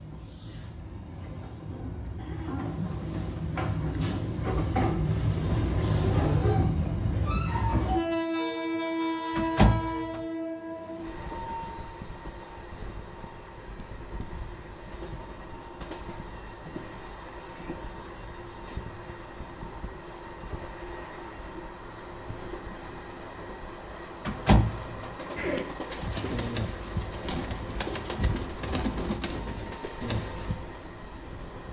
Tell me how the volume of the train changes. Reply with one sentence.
The volume of the train goes down.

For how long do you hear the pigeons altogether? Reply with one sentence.
The pigeons can be heard for 5 seconds in total.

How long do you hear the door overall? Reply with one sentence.
The door can be heard for 2 seconds in total.